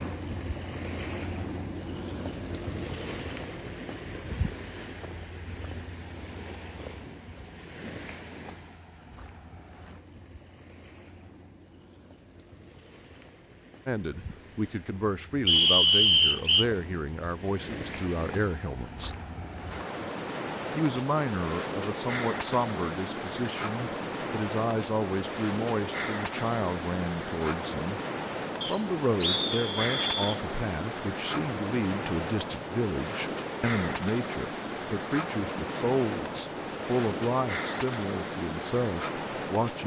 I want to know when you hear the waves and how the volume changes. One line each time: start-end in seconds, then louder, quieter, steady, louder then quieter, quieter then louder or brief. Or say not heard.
0.0-39.8 quieter then louder.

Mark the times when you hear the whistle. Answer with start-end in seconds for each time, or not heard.
15.4-16.6, 28.6-30.4.